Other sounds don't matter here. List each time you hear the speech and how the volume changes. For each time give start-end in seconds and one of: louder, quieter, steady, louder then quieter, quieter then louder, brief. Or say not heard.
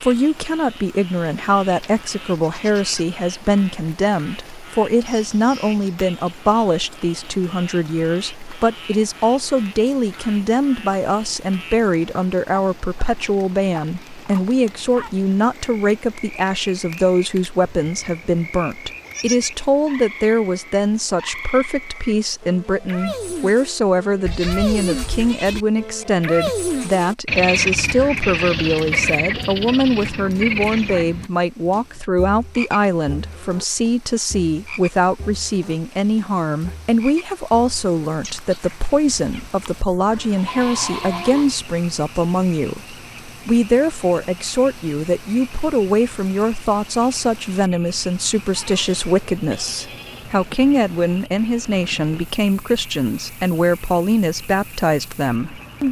0.0-55.8 steady.